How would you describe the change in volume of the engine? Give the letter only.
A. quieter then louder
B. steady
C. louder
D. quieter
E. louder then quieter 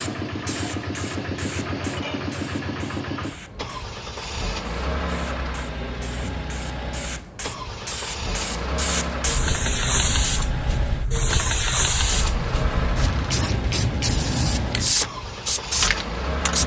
B.